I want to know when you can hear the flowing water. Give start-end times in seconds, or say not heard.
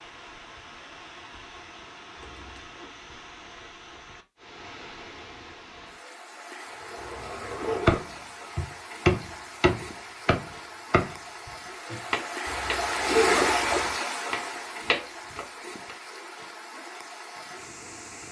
0.0-18.2.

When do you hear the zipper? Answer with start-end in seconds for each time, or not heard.
2.2-2.9, 7.0-8.1, 12.4-13.9.